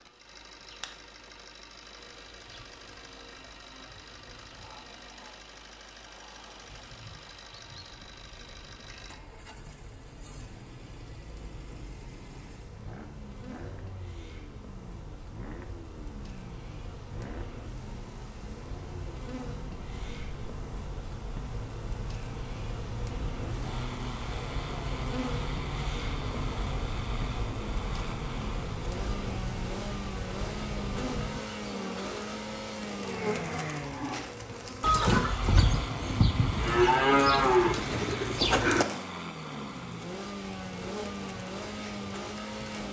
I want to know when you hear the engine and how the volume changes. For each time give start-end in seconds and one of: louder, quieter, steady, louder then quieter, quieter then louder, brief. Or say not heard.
0.0-42.8 louder.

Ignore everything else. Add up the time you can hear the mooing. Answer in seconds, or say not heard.
6 s.